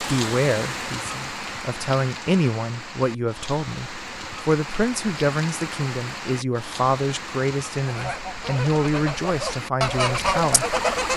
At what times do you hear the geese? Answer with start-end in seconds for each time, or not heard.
7.8-11.1.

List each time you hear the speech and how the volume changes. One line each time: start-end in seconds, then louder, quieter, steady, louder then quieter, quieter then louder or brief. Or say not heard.
0.0-10.8 steady.